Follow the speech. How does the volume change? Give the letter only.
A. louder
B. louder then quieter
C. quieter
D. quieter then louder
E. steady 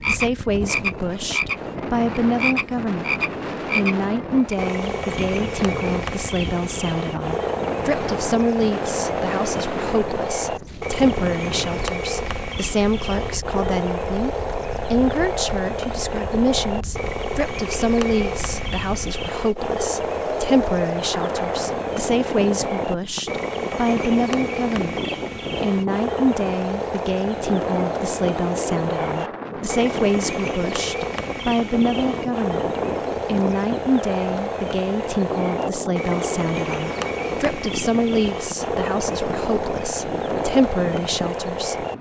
E.